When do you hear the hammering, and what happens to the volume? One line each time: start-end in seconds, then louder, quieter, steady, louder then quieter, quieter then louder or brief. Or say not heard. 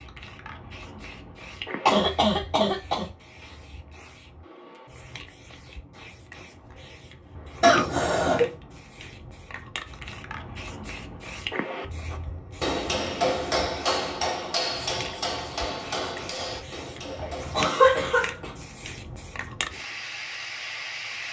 12.1-17.7 quieter.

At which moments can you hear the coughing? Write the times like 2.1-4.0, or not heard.
1.9-3.0, 7.6-8.5, 17.1-18.5.